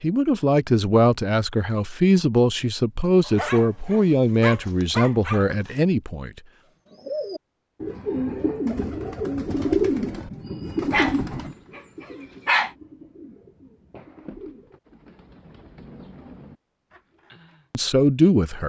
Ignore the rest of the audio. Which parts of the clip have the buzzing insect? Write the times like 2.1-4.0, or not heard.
not heard.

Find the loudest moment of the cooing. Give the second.
10 s.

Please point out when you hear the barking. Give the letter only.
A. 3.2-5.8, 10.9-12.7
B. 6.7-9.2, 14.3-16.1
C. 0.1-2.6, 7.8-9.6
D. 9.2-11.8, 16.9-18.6
A.